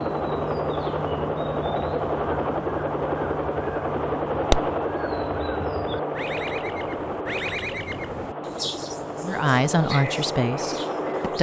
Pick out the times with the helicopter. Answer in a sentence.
The helicopter can be heard from 0.0 to 11.3 s.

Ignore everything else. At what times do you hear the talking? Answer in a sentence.
The talking can be heard from 9.2 to 11.3 s.